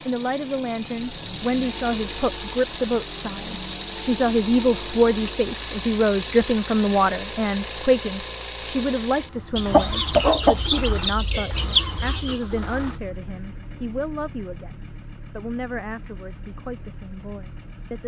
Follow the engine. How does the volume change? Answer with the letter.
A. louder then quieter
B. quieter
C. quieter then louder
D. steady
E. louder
B.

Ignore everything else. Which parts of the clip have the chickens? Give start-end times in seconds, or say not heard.
9.6-12.4.